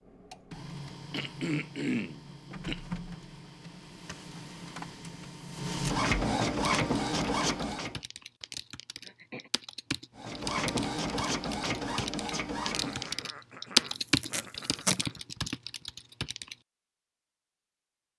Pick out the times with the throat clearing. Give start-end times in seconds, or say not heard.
1.1-2.8, 8.6-9.5, 12.7-15.2.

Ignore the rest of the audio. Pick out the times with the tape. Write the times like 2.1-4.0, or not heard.
14.0-15.0.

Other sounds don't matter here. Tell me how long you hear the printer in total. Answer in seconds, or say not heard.
11 s.